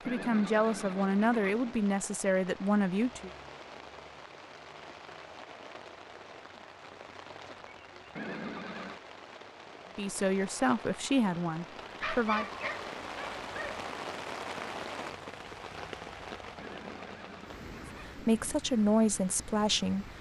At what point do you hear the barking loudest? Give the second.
12 s.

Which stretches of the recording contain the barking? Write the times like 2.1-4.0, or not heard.
12.0-13.8.